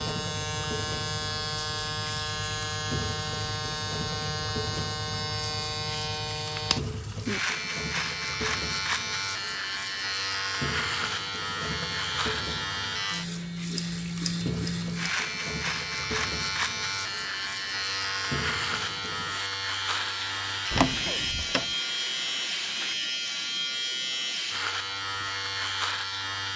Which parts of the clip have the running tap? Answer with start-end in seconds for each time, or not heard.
0.0-22.9.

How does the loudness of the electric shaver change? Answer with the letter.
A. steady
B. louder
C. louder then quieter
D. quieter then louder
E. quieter
A.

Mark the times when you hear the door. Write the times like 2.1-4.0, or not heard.
20.7-21.8.